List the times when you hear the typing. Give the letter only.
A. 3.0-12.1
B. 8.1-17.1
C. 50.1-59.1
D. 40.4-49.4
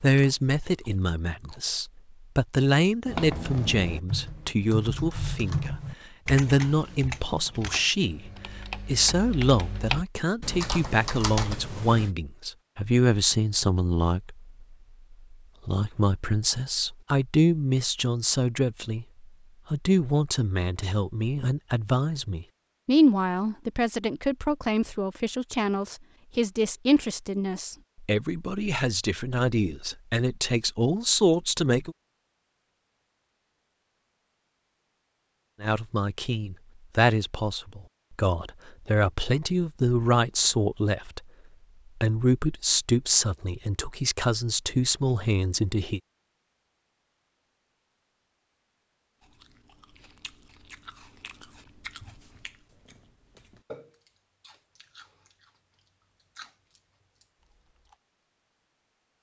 A.